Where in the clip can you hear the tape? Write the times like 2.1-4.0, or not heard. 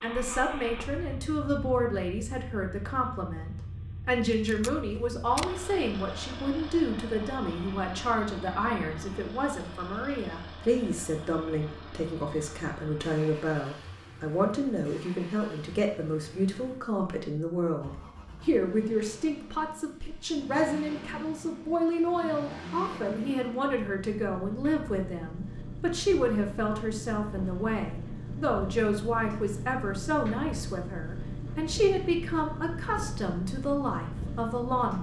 4.5-5.7.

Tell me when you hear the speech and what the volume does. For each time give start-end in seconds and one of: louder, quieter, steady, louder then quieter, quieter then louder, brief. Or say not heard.
0.0-34.9 steady.